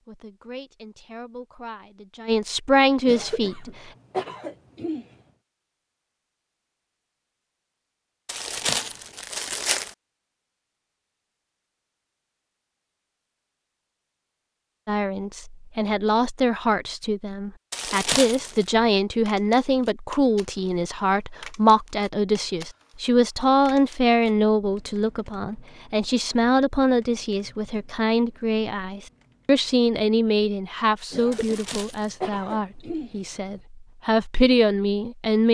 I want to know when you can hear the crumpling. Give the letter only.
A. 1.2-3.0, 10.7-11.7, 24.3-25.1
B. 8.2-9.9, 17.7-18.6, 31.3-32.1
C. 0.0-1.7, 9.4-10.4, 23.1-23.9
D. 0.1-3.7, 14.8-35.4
B.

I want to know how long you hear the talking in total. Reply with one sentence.
The talking can be heard for 24 seconds in total.